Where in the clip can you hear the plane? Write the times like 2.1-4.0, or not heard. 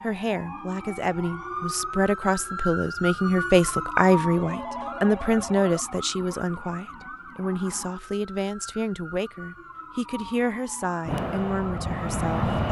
11.1-12.6.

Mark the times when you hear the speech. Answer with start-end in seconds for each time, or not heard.
0.0-12.6.